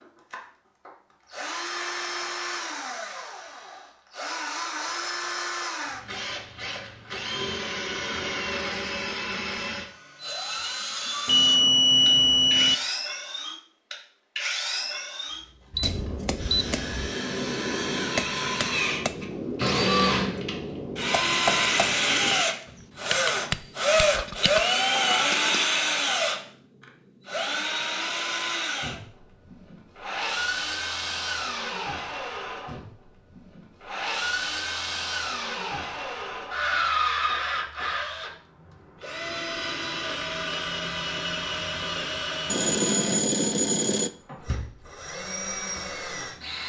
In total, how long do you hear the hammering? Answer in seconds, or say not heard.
10 s.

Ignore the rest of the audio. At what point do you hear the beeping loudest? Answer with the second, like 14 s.
12 s.